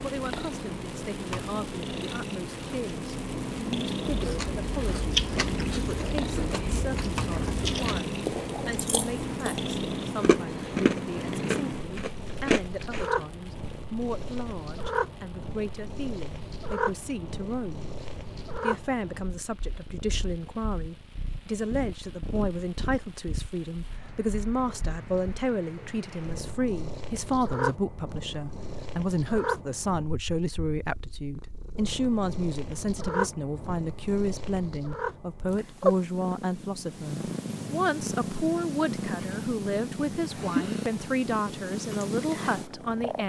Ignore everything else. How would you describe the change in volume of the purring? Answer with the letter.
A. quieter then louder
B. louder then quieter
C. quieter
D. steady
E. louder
A.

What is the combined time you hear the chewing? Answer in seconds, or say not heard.
9 s.